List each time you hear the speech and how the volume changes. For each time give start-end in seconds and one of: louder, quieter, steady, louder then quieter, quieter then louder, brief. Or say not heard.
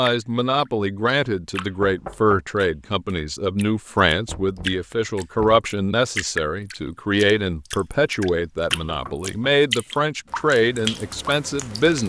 0.0-12.0 steady.